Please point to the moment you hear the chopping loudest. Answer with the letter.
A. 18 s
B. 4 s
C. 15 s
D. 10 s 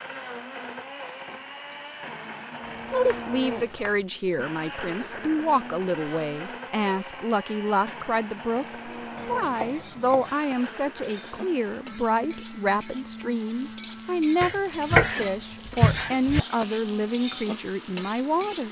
C.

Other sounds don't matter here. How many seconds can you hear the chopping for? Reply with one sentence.
You can hear the chopping for 4 seconds altogether.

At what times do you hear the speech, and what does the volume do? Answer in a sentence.
The speech can be heard from 2.9 to 18.6 s, at a steady volume.